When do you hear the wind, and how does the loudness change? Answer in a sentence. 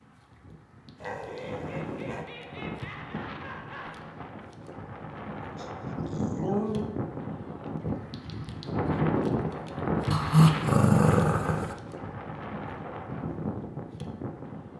The wind can be heard from 0.0 to 14.7 s, getting louder then quieter.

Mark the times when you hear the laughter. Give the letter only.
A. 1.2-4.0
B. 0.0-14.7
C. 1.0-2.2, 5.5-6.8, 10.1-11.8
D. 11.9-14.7
A.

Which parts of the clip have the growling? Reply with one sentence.
You can hear the growling from 1.0 to 2.2 s, from 5.5 to 6.8 s and from 10.1 to 11.8 s.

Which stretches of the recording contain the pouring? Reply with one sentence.
The pouring can't be heard in this clip.